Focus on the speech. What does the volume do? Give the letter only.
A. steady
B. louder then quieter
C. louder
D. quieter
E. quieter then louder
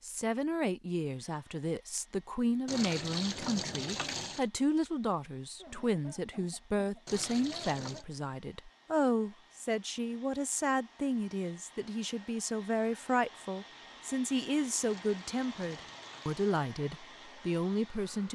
A.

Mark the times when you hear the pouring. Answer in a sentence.
You can hear the pouring from 2.6 to 4.5 s, from 7.0 to 8.1 s and from 14.8 to 16.4 s.